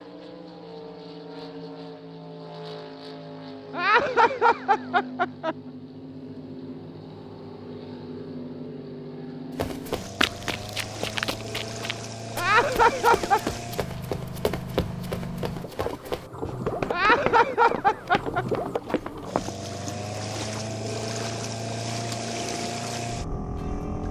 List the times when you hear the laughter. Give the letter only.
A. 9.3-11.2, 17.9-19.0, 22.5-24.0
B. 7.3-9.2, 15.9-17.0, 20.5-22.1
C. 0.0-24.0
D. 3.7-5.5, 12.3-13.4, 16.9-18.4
D.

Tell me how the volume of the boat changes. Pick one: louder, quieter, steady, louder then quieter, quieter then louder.
louder.